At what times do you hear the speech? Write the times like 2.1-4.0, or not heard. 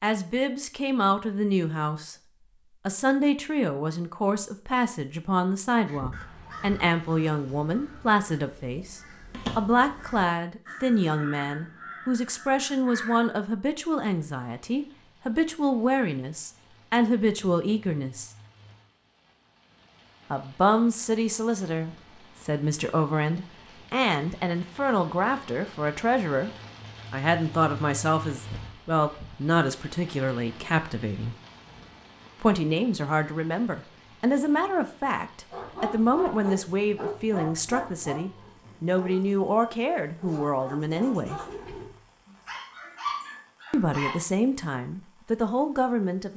0.0-2.1, 2.9-18.3, 20.3-26.5, 27.1-31.4, 32.4-41.4, 43.7-46.3.